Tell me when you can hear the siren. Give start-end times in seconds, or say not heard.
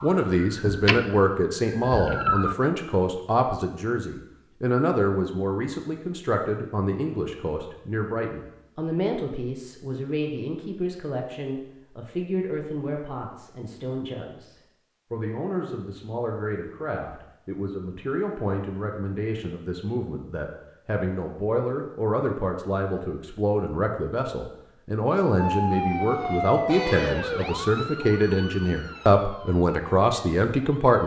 0.0-2.5, 25.4-31.0.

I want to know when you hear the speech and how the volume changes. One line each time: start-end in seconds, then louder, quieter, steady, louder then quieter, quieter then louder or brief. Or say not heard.
0.0-31.0 quieter then louder.